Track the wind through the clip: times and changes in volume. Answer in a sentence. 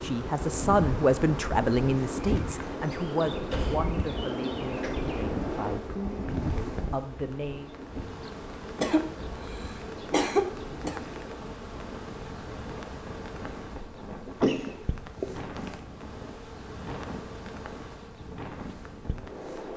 You can hear the wind from 0.0 to 19.7 s, getting quieter.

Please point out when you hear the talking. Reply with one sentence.
The talking can be heard from 0.0 to 7.7 s.